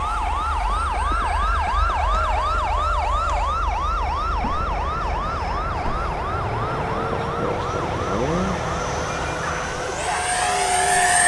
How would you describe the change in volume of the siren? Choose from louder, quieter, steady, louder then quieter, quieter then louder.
quieter.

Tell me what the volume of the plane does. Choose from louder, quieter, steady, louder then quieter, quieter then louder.
louder.